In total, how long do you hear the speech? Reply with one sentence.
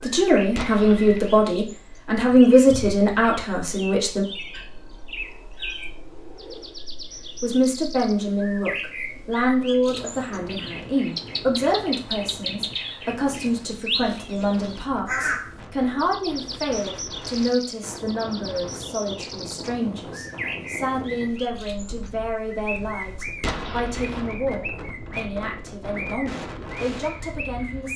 You can hear the speech for 25 seconds altogether.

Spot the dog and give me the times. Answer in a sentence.
You can't hear the dog here.